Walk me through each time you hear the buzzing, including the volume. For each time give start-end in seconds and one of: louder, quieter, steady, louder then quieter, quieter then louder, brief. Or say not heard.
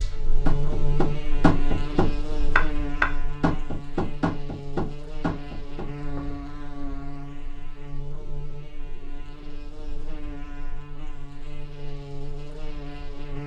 0.0-13.4 quieter.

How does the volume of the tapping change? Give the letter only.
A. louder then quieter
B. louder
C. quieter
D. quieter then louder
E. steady
C.